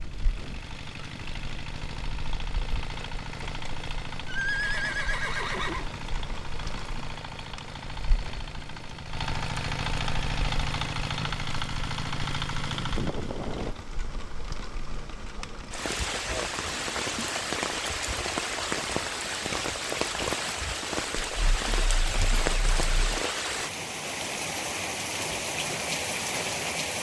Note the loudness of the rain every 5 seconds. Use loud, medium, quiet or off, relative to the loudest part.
quiet, quiet, quiet, loud, loud, loud.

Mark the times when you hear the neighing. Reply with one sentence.
The neighing can be heard from 4.2 to 5.8 s.